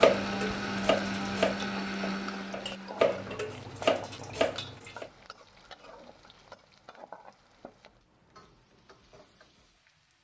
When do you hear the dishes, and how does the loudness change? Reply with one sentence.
The dishes can be heard from 0.0 to 5.0 s, getting quieter then louder.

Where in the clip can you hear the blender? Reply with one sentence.
The blender can be heard from 0.0 to 3.4 s.